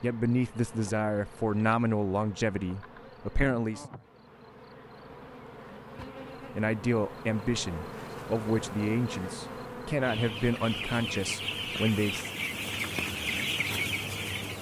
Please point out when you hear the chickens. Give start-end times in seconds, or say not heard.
10.0-14.5.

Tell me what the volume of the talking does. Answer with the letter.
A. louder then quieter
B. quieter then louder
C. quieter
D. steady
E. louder
D.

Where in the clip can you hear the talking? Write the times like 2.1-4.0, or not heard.
0.0-3.9, 6.5-12.3.